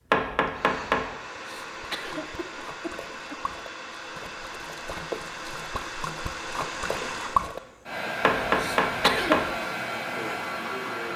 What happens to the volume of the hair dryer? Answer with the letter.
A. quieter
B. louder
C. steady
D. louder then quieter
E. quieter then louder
B.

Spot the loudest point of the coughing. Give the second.
9 s.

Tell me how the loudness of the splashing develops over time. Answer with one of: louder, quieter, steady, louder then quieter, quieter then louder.
louder.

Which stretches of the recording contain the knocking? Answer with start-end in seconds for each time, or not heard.
0.1-1.1, 8.2-9.5.